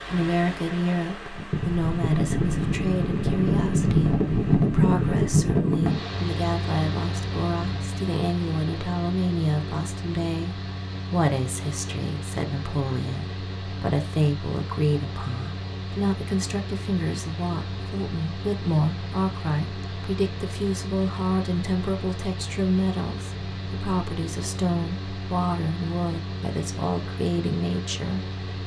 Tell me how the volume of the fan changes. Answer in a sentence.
The loudness of the fan goes down.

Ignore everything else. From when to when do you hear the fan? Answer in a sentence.
The fan can be heard from 0.0 to 28.6 s.